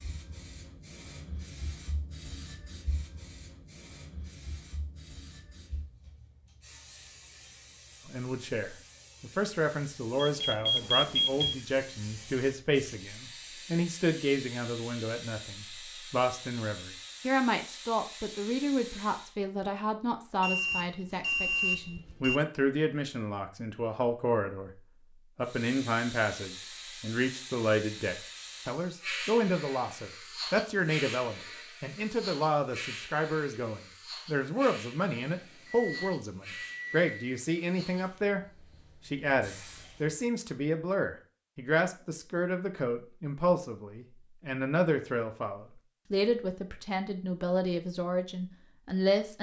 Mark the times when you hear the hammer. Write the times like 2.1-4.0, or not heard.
not heard.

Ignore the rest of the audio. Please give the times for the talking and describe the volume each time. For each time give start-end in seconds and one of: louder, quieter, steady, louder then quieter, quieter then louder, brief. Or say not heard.
8.1-24.7 steady
25.4-38.4 steady
39.0-49.3 steady.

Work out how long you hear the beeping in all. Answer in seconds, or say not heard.
5 s.